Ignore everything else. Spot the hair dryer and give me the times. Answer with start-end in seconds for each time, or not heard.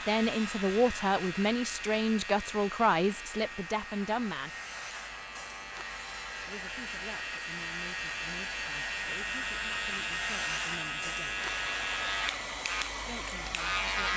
0.0-14.1.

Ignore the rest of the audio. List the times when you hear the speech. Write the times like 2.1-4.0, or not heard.
0.1-4.5, 6.4-11.5, 12.9-14.1.